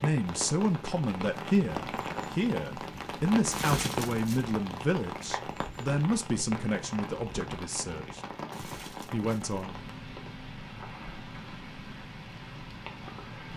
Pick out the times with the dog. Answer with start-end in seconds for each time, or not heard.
not heard.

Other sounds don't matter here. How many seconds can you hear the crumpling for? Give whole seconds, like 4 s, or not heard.
2 s.